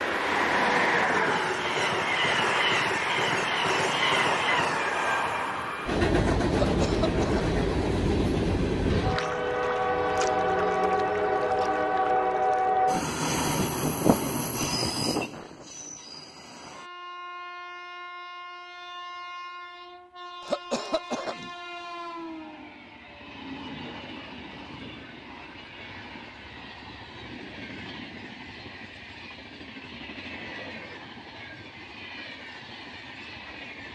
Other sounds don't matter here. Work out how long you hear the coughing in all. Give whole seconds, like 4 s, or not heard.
2 s.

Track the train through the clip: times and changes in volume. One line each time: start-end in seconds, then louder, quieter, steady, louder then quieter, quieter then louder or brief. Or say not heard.
0.0-33.9 quieter.